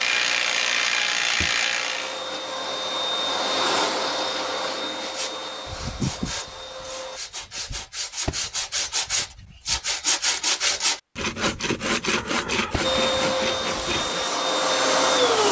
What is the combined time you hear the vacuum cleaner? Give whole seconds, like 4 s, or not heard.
10 s.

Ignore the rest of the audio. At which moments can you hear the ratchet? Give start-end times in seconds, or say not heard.
0.0-2.2.